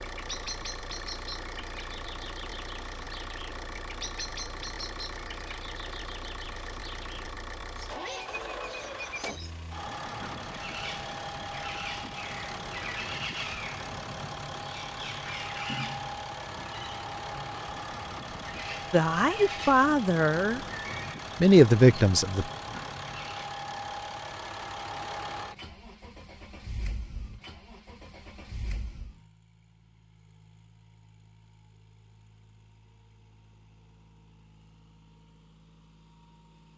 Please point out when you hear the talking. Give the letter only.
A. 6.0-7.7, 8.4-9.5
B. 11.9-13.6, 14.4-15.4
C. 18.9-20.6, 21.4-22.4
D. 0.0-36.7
C.